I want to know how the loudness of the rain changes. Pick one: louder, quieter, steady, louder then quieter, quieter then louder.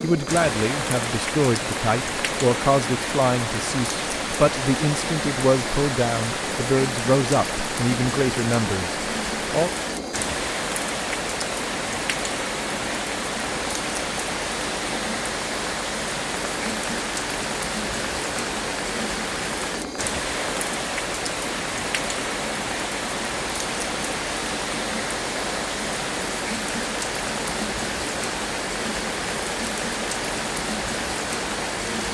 steady.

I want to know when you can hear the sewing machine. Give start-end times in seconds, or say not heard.
0.0-32.1.